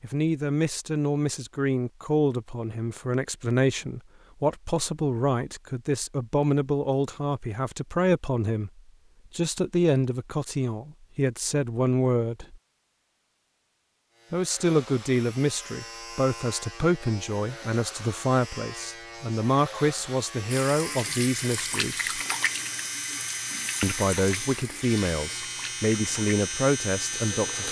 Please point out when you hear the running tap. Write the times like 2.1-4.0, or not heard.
20.5-27.6.